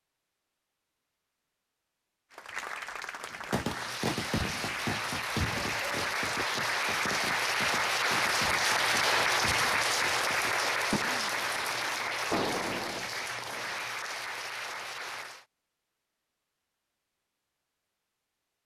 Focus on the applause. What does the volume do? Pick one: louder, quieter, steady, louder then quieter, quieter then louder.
louder then quieter.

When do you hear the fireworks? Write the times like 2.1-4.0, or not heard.
3.3-13.8.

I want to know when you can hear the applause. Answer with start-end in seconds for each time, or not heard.
2.3-15.4.